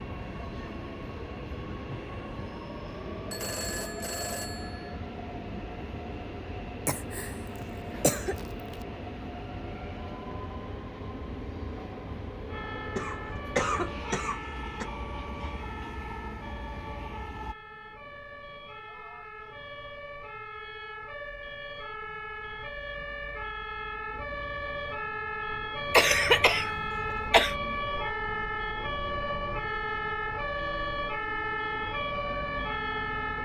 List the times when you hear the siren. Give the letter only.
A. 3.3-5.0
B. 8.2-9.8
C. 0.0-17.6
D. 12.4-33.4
D.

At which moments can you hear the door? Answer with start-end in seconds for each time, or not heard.
not heard.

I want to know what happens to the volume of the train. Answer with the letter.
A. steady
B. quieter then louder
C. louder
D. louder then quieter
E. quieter
A.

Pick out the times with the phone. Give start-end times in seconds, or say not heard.
3.3-5.0.